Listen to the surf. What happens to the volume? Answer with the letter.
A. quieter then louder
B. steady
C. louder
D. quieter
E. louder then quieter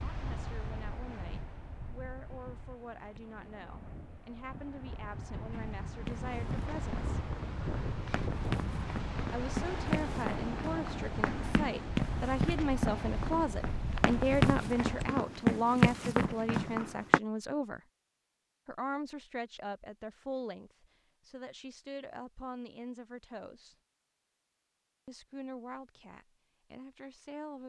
C.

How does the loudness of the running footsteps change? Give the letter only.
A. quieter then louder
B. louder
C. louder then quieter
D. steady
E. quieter
B.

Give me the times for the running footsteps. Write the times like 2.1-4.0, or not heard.
5.5-17.2.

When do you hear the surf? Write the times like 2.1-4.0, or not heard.
0.0-15.1.